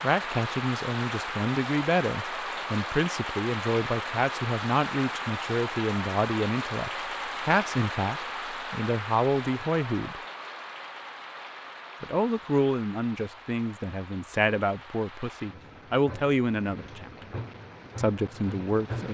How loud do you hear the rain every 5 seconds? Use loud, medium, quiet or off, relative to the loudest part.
loud, loud, medium, medium.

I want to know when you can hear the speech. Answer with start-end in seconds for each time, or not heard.
0.0-10.2, 12.0-17.1, 17.9-19.1.